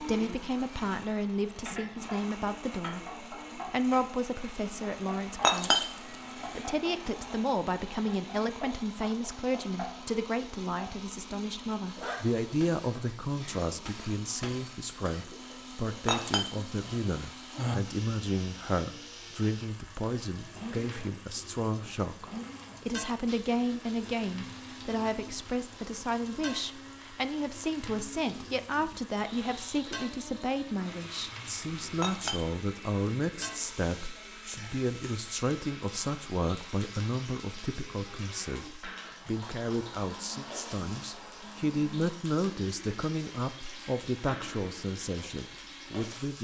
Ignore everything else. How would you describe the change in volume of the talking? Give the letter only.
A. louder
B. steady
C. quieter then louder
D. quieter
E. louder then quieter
B.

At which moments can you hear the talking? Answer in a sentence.
You can hear the talking from 0.0 to 46.3 s.